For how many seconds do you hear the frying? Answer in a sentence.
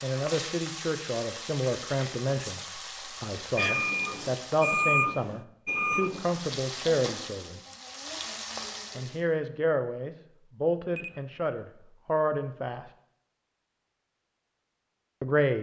The frying can be heard for 8 seconds in total.